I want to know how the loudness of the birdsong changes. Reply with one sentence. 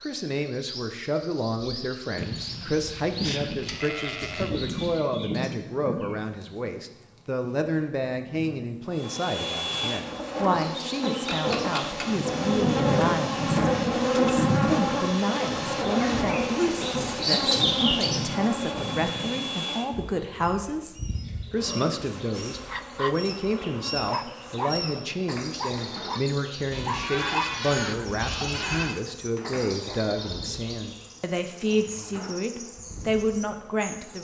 The loudness of the birdsong goes up, then down.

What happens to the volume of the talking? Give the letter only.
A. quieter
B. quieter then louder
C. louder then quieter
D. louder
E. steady
E.